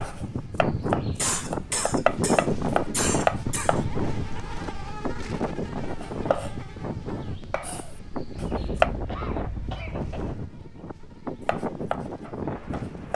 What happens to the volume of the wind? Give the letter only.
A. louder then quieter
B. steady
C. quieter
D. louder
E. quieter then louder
C.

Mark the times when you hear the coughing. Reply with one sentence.
You can hear the coughing from 1.1 to 3.9 s and from 8.3 to 10.3 s.